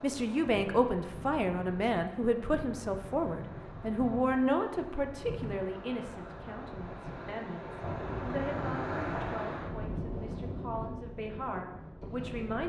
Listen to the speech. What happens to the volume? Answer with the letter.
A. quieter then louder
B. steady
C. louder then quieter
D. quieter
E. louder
D.